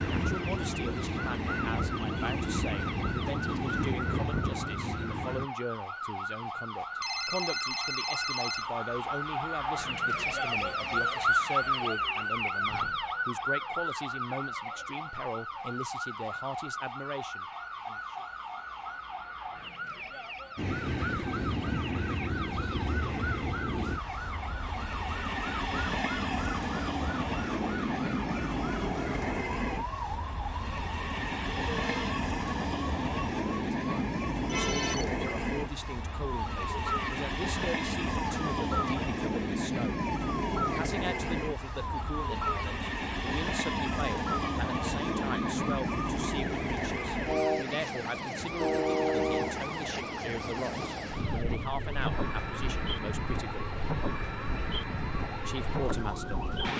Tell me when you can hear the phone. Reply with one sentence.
The phone can be heard from 7.0 to 8.7 s and from 34.5 to 35.0 s.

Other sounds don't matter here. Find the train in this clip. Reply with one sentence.
You can hear the train from 0.0 to 5.5 s and from 20.6 to 56.7 s.